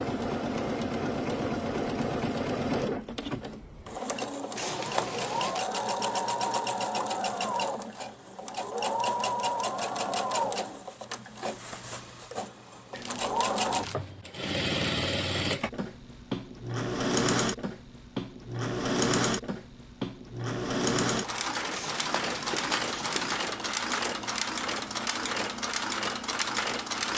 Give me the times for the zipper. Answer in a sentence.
The zipper can't be heard in this clip.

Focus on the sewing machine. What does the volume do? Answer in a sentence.
The loudness of the sewing machine stays about the same.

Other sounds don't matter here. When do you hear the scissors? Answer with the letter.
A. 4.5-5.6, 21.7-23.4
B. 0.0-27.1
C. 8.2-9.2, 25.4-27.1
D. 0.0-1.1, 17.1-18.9
A.